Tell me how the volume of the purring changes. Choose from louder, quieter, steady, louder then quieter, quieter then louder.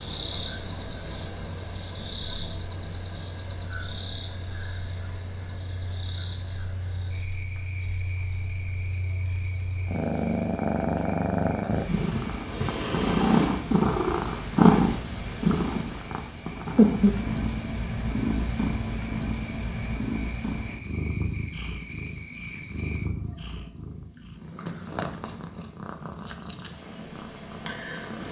louder then quieter.